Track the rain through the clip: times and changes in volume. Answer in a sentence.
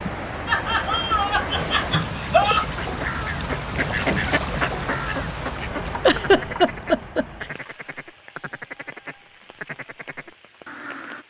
The rain can be heard from 0.0 to 11.2 s, getting quieter.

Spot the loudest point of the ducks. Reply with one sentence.
The loudest moment of the ducks is at 4 seconds.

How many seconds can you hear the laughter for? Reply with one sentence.
You can hear the laughter for 4 seconds altogether.